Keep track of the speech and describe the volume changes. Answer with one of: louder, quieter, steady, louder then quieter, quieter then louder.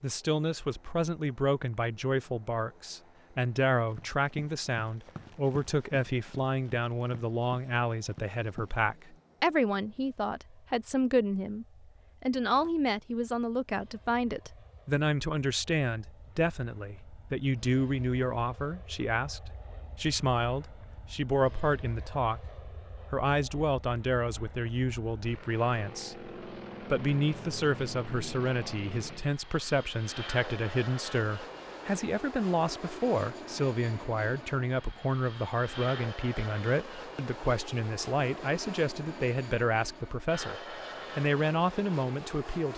steady.